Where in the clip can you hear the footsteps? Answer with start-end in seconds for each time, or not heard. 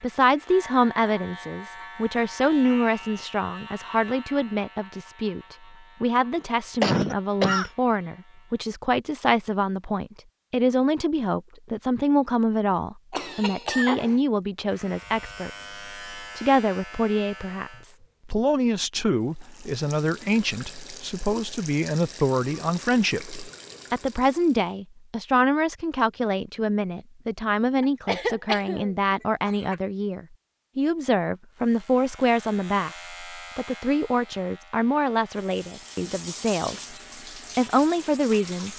not heard.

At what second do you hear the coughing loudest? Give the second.
7 s.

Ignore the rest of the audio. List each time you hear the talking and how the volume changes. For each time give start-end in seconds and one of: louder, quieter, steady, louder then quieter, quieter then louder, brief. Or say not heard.
0.0-37.0 steady
37.5-38.7 brief.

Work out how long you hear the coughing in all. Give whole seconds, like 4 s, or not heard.
4 s.